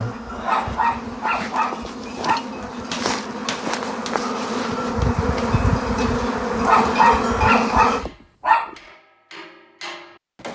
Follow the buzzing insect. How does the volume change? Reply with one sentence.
The loudness of the buzzing insect goes up.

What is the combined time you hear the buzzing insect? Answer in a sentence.
You can hear the buzzing insect for 8 seconds altogether.